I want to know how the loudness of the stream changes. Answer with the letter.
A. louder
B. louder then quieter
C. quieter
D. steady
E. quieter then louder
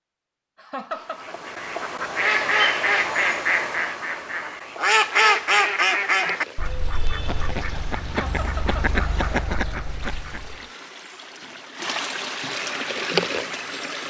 A.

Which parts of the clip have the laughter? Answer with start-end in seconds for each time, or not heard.
0.6-1.3, 8.1-9.0.